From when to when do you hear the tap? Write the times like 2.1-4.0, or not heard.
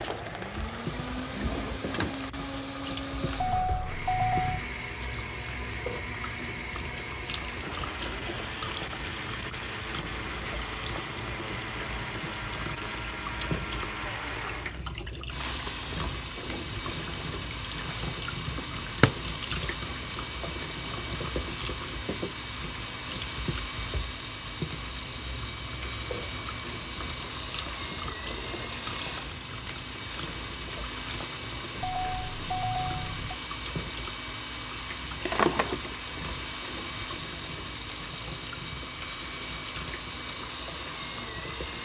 0.0-41.8.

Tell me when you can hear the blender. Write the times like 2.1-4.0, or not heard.
0.0-41.8.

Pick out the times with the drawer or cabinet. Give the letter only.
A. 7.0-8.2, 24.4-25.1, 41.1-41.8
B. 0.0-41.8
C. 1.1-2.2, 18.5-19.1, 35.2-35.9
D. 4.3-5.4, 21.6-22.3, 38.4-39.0
C.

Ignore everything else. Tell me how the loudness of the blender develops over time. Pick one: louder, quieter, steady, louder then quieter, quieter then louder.
steady.